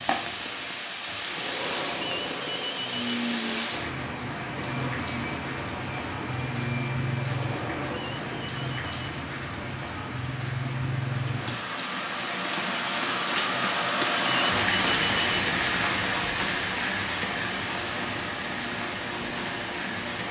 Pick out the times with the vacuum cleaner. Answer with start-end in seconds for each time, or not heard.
0.0-8.5, 17.4-20.2.